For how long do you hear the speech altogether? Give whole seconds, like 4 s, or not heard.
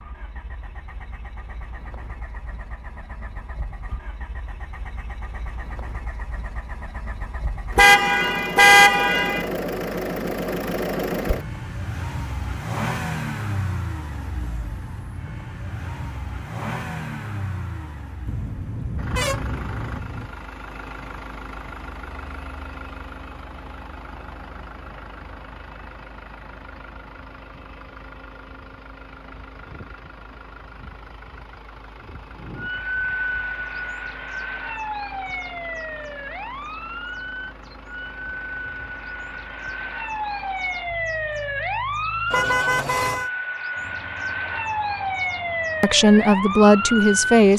2 s.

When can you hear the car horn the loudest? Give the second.
9 s.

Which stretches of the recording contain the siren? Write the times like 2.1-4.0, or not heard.
32.4-47.4.